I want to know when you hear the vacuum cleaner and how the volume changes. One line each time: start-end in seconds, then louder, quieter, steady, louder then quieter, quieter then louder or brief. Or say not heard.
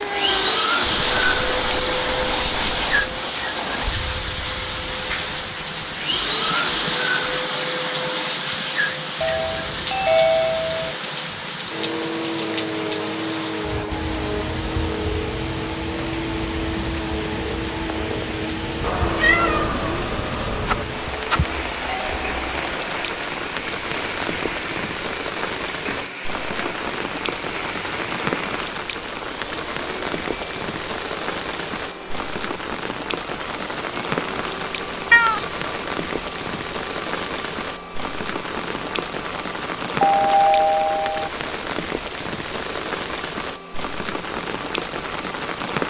0.0-45.8 quieter.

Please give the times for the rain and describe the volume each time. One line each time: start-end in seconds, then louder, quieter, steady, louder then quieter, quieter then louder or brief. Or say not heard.
0.0-45.8 steady.